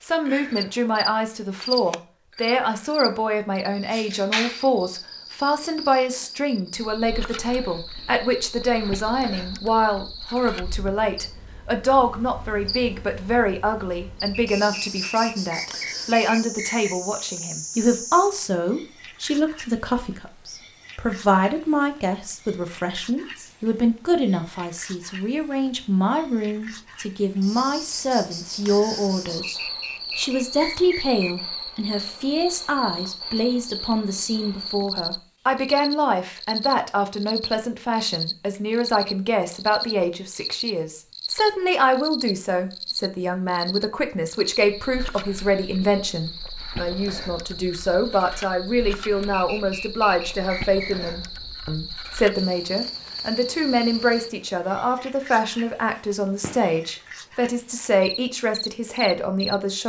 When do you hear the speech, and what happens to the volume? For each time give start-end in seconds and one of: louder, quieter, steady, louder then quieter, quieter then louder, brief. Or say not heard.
0.0-59.8 steady.